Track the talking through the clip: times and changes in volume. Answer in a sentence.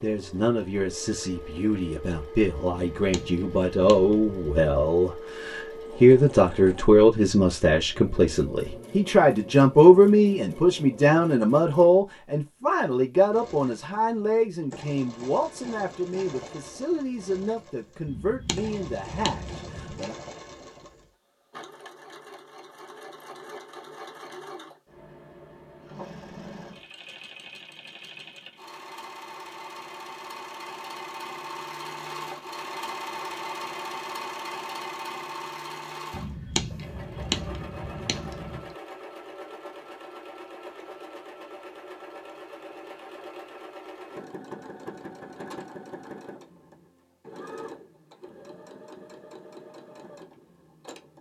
The talking can be heard from 0.0 to 20.1 s, getting louder then quieter.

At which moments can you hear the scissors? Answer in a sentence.
You can hear the scissors from 2.7 to 4.3 s, from 18.1 to 20.1 s and from 36.1 to 38.6 s.